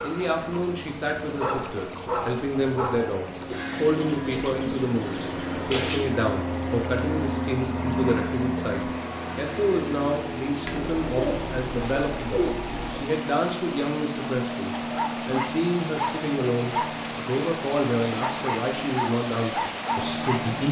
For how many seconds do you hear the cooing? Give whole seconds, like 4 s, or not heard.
5 s.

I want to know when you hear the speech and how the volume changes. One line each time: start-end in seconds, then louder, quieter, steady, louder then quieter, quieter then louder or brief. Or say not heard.
0.0-20.6 steady.